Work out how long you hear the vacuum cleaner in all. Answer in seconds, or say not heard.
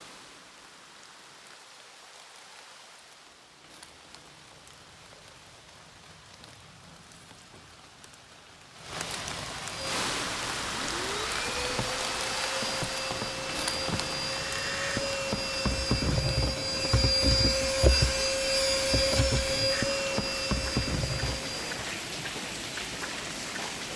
12 s.